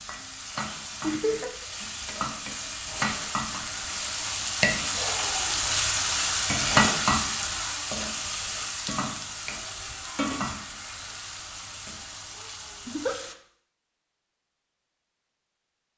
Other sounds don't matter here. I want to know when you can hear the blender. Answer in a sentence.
You can't hear the blender here.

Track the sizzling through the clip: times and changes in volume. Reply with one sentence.
The sizzling can be heard from 0.0 to 13.3 s, getting louder then quieter.